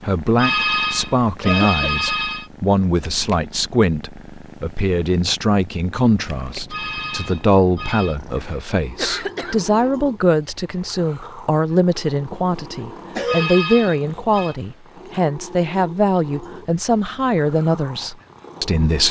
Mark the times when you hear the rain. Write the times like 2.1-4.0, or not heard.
not heard.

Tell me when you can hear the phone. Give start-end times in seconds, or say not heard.
0.3-2.5, 6.7-8.2, 13.2-14.6.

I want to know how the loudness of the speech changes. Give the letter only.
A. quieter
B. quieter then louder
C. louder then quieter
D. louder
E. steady
E.